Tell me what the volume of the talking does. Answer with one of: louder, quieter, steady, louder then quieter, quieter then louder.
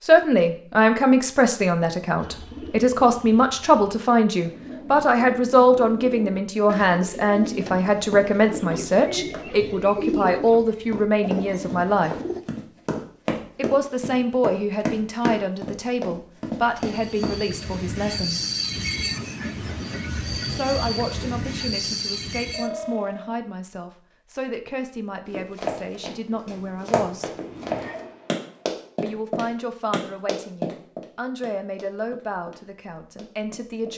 quieter.